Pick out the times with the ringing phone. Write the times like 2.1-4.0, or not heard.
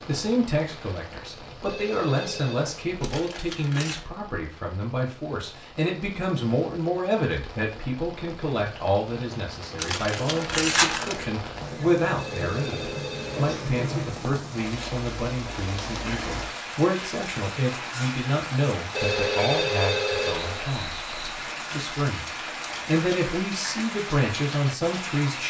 1.6-2.6, 12.2-13.6, 18.9-21.4.